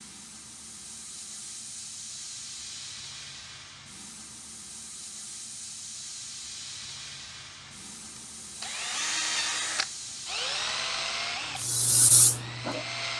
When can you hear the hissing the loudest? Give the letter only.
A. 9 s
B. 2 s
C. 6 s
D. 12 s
D.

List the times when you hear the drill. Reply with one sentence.
You can hear the drill from 7.7 to 13.1 s.